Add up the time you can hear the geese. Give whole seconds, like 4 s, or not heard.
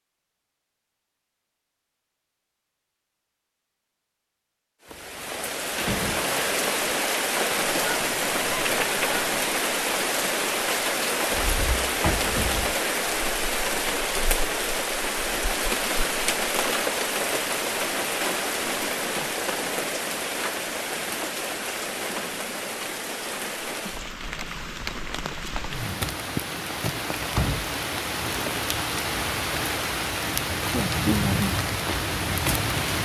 2 s.